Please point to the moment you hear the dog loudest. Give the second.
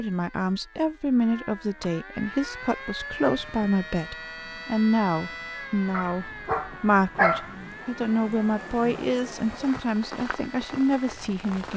7 s.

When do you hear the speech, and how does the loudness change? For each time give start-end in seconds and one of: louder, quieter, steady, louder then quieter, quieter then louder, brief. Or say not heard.
0.0-11.7 steady.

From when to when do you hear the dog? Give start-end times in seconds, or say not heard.
5.9-7.5.